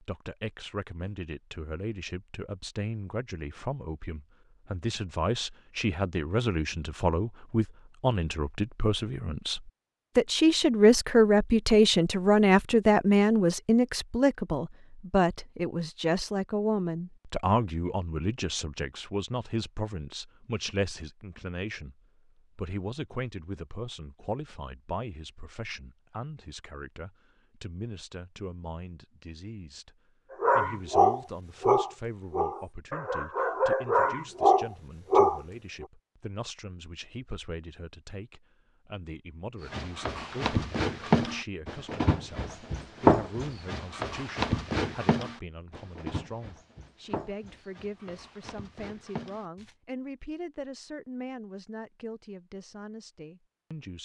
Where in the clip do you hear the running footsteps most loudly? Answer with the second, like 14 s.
43 s.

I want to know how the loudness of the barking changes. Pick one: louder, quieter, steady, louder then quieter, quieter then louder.
quieter then louder.